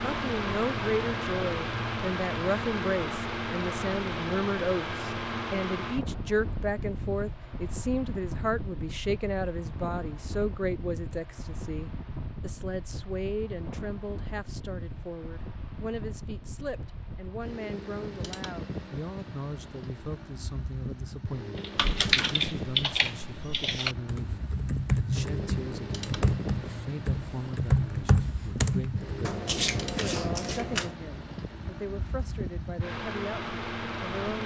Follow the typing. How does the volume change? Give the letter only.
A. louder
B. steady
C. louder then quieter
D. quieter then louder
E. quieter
D.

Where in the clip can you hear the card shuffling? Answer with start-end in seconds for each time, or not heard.
29.2-30.9.